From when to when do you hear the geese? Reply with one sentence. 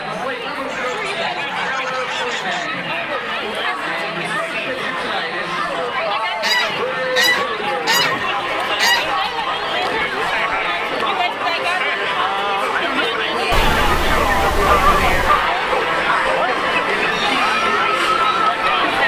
You can hear the geese from 0.7 to 2.7 s, from 6.4 to 9.1 s and from 13.5 to 15.5 s.